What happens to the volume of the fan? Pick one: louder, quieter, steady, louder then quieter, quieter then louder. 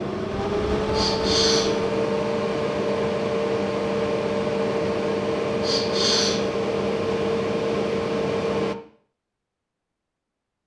steady.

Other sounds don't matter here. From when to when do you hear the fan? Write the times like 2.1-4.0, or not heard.
0.0-8.8.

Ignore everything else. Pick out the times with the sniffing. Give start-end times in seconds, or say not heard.
0.9-1.7, 5.6-6.4.